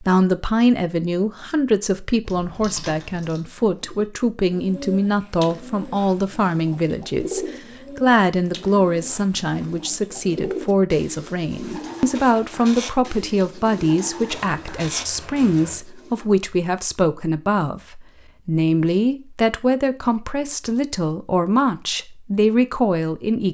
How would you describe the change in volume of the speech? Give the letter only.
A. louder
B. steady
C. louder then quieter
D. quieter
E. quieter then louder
B.